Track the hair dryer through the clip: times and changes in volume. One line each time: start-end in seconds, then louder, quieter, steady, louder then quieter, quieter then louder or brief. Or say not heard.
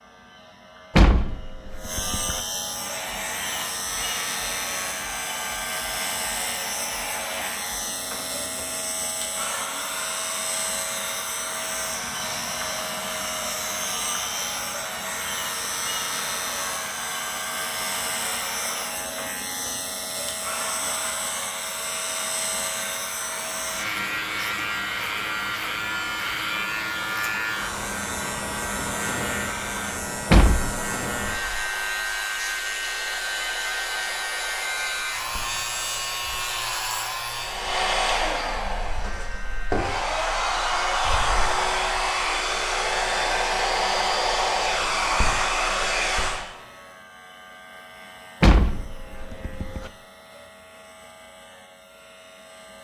2.6-46.5 louder.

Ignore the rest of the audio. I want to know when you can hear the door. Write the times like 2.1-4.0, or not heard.
0.9-2.4, 30.3-30.9, 48.4-49.9.